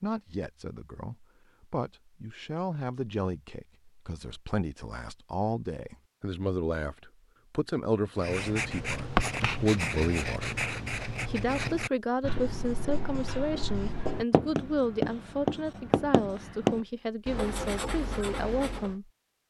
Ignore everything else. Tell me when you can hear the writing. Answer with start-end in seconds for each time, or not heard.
8.2-18.9.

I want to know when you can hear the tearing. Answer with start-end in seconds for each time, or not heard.
not heard.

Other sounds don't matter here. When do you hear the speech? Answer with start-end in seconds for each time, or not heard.
0.0-19.1.